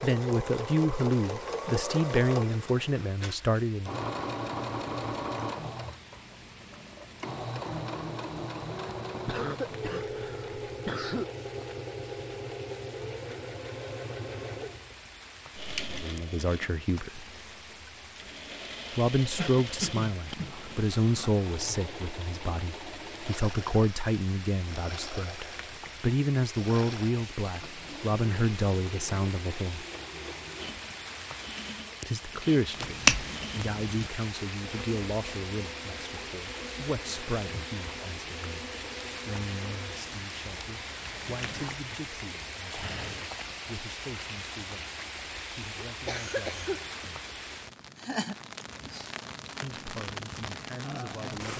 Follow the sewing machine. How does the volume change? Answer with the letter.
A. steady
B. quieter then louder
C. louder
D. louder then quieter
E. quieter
E.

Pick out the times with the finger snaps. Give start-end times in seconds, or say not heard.
32.8-34.1.